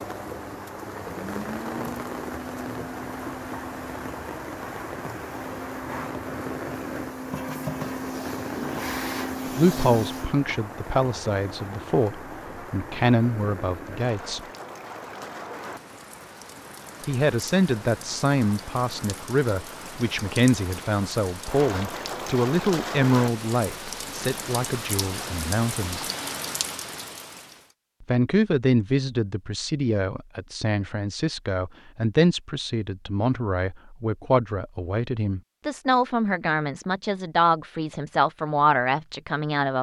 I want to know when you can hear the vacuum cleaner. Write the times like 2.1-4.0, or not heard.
0.0-10.4.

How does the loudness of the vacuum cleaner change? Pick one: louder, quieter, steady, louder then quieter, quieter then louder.
louder.